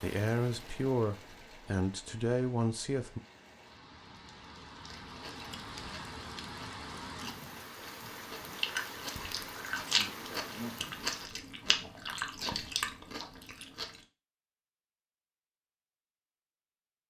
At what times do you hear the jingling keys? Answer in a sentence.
You can't hear the jingling keys here.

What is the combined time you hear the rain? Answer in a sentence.
You can hear the rain for 11 seconds altogether.